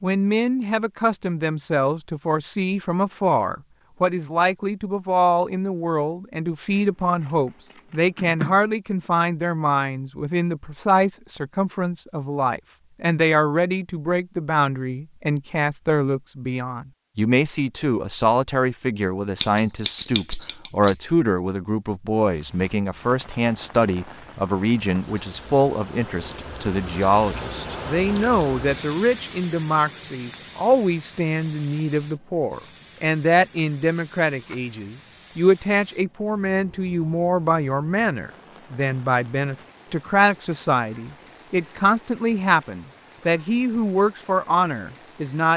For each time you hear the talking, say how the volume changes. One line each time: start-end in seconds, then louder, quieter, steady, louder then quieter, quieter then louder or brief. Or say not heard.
0.0-45.5 steady.